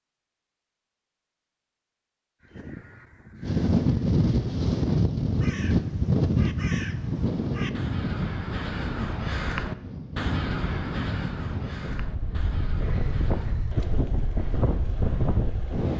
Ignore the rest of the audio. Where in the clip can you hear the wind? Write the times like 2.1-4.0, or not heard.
3.4-15.9.